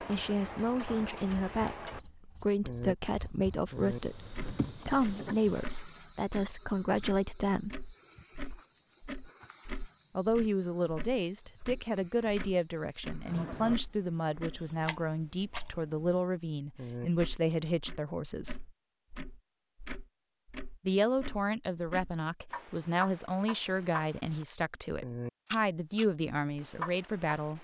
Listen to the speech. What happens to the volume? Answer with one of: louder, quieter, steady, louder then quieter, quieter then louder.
steady.